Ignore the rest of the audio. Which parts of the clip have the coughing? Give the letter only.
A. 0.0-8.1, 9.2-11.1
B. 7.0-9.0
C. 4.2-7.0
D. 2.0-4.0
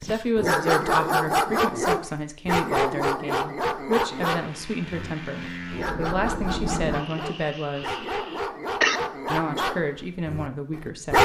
B.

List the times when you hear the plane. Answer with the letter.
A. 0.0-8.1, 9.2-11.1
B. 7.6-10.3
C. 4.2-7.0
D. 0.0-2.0
C.